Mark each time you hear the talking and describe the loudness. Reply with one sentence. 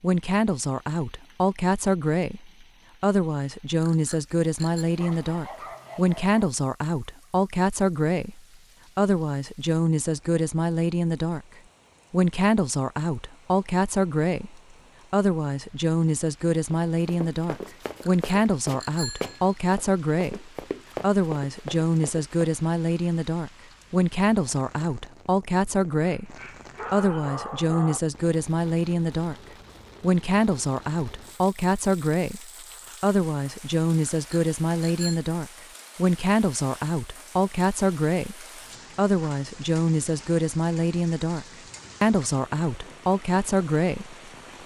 You can hear the talking from 0.0 to 11.4 s, at a steady volume; from 12.1 to 29.4 s, at a steady volume; and from 30.0 to 44.6 s, at a steady volume.